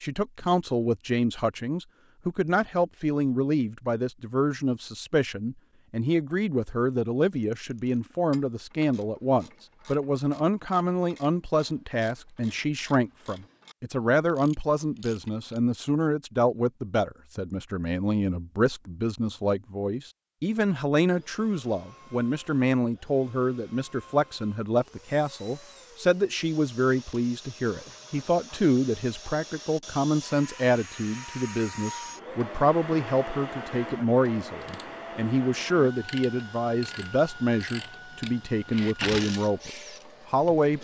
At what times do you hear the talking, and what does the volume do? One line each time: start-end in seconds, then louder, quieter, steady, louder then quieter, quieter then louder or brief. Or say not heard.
0.0-39.7 steady
40.3-40.8 brief.